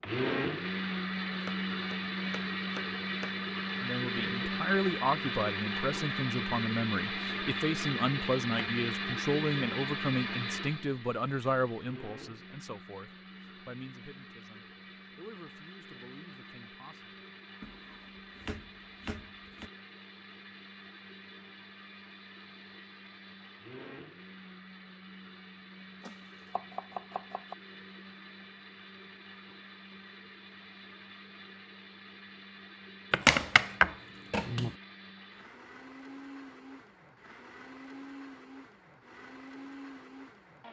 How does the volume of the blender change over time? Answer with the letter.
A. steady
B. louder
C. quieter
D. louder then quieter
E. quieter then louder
C.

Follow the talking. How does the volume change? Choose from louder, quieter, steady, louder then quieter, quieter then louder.
quieter.